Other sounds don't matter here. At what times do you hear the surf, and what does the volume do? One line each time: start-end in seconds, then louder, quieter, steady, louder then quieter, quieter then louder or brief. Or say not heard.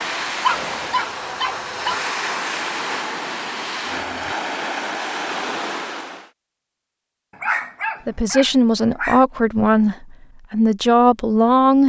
0.0-6.3 steady.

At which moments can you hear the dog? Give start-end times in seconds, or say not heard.
0.4-2.0, 7.3-9.2.